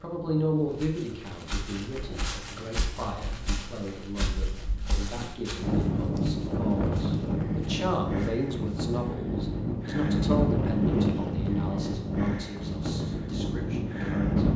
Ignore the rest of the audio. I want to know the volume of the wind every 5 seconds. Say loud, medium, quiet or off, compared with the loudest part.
quiet, loud, loud.